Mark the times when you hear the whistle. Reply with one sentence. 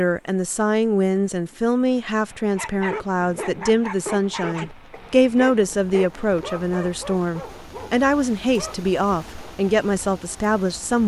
You can't hear the whistle here.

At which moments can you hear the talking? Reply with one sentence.
The talking can be heard from 0.0 to 11.0 s.